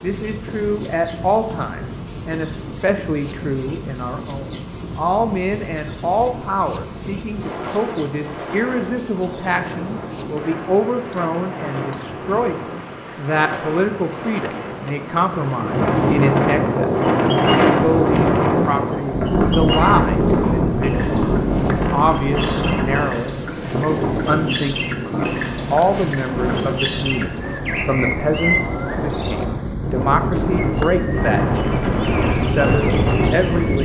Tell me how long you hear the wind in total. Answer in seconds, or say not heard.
34 s.